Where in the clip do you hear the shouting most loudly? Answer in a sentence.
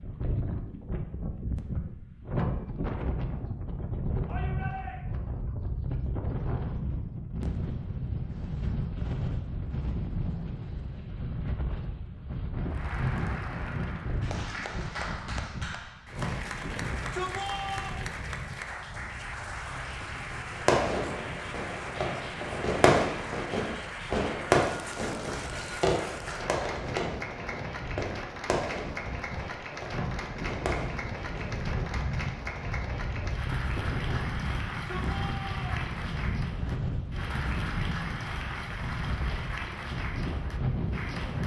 The volume of the shouting peaks at 17 seconds.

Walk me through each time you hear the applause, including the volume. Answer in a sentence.
You can hear the applause from 12.7 to 41.4 s, at a steady volume.